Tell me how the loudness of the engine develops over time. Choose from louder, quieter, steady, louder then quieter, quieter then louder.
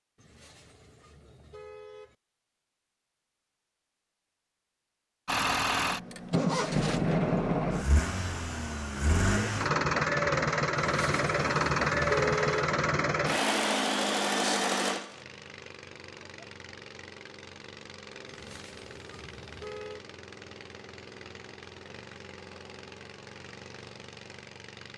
quieter.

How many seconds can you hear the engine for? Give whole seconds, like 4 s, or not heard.
20 s.